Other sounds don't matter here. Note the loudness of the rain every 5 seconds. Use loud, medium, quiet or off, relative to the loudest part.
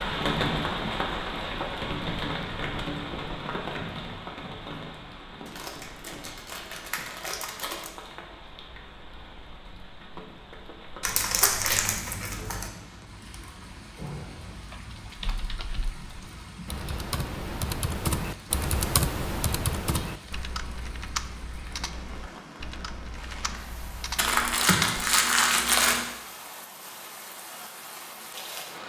loud, quiet, quiet, quiet, quiet, medium.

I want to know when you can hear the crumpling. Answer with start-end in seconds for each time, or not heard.
5.5-7.9, 11.0-12.7, 24.1-26.1.